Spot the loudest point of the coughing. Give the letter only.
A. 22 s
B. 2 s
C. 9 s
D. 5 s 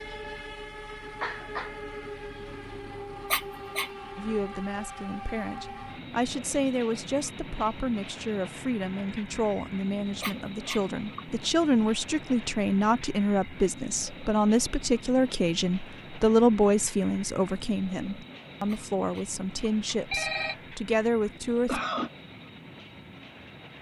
A.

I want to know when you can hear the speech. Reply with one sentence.
You can hear the speech from 4.2 to 21.8 s.